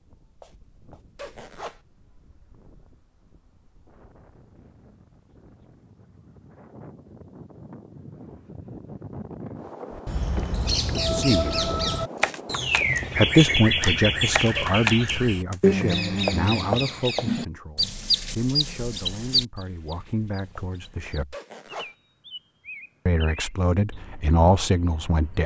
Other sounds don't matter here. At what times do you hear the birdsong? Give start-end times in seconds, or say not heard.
9.9-25.4.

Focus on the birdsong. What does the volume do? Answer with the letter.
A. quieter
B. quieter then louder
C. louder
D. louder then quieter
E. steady
A.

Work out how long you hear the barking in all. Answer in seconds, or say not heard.
not heard.